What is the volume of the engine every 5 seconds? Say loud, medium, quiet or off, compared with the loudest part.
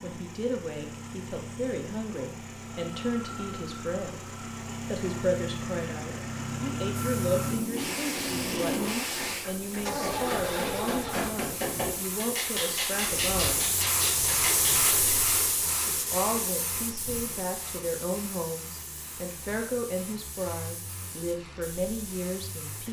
medium, loud, medium, quiet, quiet.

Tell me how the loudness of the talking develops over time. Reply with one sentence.
The loudness of the talking stays about the same.